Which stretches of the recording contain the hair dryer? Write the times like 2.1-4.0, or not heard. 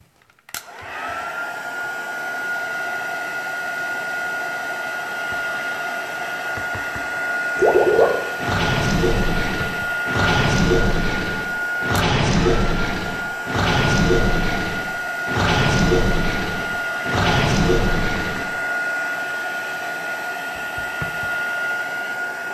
0.5-22.4.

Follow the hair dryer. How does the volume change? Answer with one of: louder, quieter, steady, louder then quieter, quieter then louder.
steady.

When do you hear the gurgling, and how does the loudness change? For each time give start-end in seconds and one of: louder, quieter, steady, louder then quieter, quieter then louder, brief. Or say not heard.
7.5-18.4 steady.